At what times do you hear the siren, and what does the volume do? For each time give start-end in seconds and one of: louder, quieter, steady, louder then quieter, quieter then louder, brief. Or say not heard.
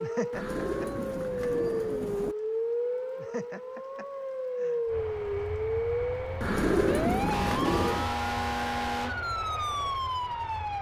0.0-10.7 steady.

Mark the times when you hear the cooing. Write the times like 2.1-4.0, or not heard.
0.3-2.4, 6.4-8.1.